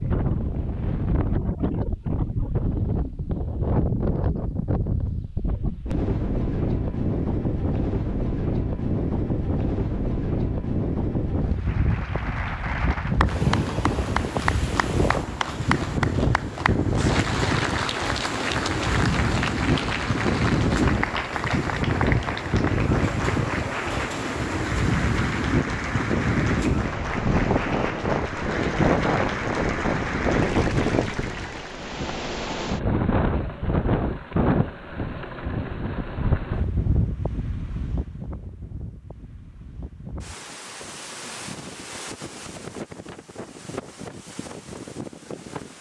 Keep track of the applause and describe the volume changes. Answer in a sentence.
The volume of the applause stays about the same.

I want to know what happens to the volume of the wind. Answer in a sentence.
The loudness of the wind goes down.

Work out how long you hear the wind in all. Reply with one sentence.
You can hear the wind for 46 seconds altogether.